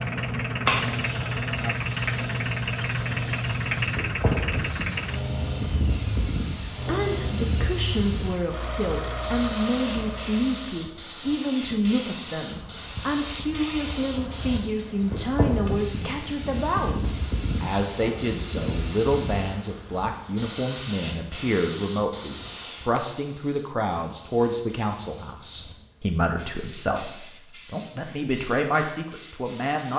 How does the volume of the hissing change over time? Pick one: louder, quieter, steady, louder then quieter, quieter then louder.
quieter.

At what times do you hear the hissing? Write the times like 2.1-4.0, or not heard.
0.0-29.9.